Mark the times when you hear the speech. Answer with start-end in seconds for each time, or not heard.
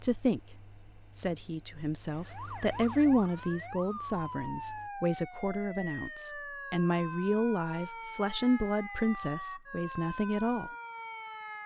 0.0-0.6, 1.1-10.7.